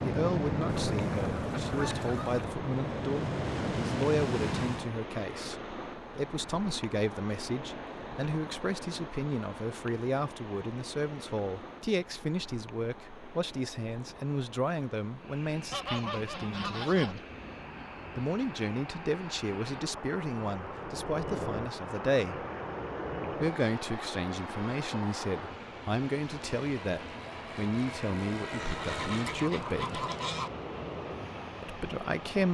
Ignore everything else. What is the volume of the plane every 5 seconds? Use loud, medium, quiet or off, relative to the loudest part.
loud, off, off, quiet, medium, medium, medium.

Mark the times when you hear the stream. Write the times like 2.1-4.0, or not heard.
0.0-32.4.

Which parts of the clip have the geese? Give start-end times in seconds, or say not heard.
0.8-2.5, 15.7-17.2, 28.6-30.5.